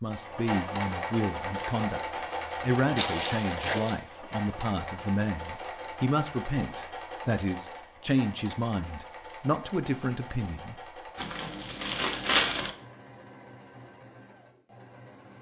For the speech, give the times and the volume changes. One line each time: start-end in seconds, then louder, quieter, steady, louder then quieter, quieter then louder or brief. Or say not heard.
0.0-10.8 steady.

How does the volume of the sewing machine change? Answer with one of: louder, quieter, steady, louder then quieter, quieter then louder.
quieter.